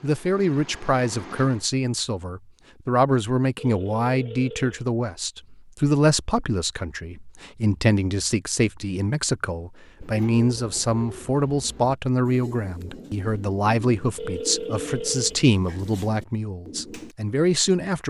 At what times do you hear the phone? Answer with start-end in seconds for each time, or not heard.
3.5-4.8, 14.2-15.4.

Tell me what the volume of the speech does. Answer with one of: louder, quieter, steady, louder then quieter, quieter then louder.
steady.